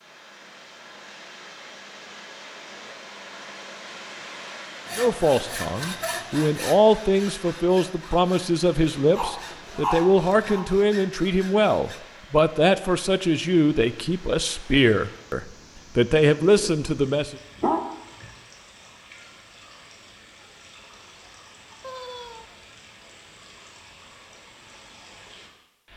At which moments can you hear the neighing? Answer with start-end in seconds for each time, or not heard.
21.8-22.8.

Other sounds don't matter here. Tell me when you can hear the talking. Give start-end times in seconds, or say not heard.
5.0-17.4.